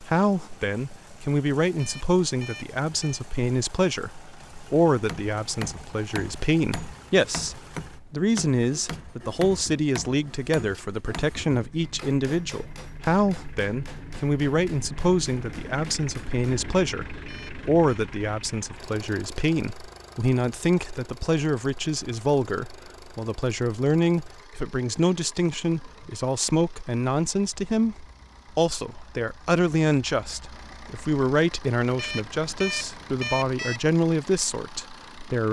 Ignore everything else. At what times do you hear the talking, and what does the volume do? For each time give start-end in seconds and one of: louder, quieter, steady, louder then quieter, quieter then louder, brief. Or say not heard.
0.0-35.4 steady.